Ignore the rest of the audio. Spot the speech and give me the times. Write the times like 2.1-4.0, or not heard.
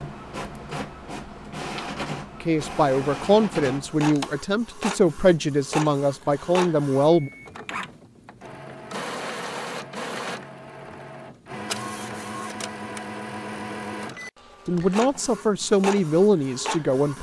2.4-7.3, 14.7-17.1.